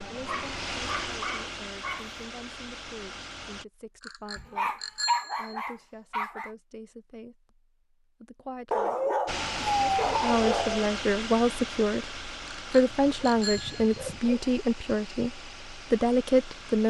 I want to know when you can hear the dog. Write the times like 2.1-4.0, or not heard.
0.2-2.1, 4.3-6.5, 8.7-10.9, 12.9-14.5.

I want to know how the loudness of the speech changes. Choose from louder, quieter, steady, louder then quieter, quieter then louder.
louder.